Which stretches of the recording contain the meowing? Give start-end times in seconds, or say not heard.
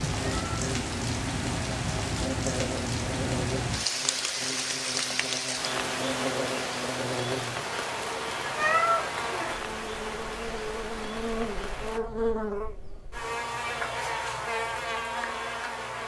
0.2-0.7, 8.6-9.1.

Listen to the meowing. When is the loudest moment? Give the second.
9 s.